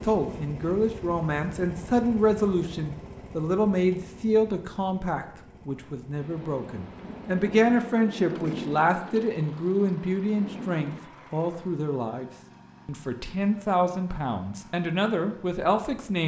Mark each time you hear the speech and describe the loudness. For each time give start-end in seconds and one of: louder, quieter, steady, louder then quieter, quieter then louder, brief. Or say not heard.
0.0-16.2 steady.